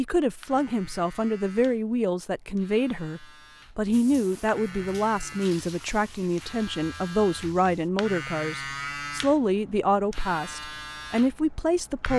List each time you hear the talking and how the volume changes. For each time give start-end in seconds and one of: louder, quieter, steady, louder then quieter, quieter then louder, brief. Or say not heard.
0.0-12.1 steady.